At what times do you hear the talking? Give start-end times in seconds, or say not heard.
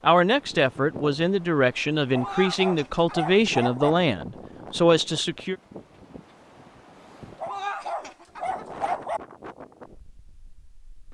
0.0-5.5.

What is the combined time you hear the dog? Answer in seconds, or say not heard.
4 s.